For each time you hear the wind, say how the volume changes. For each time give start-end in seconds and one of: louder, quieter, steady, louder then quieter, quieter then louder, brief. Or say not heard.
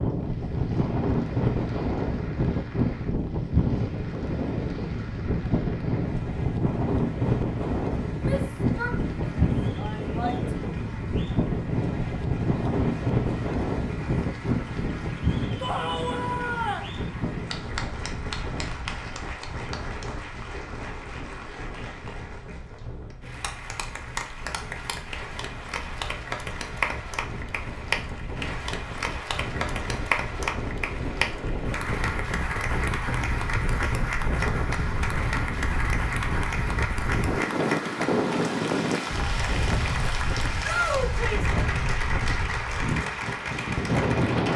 0.0-44.5 quieter then louder.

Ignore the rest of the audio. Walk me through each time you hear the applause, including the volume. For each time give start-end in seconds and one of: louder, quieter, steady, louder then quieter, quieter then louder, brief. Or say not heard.
0.0-44.5 louder.